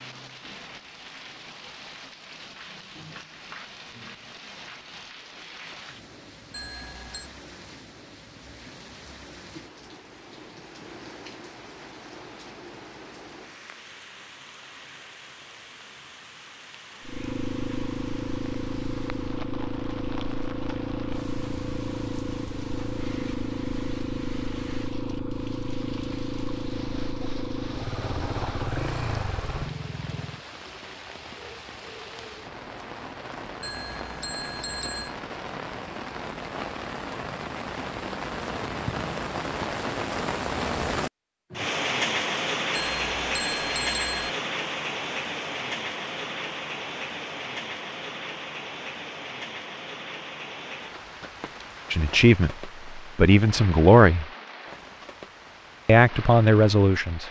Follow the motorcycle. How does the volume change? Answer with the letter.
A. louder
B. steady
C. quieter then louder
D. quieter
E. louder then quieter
B.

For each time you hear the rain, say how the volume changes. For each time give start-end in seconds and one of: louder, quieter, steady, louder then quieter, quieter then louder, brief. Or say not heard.
0.0-57.2 louder then quieter.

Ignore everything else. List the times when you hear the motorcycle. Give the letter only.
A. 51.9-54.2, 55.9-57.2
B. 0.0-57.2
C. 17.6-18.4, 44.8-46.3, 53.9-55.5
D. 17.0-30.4
D.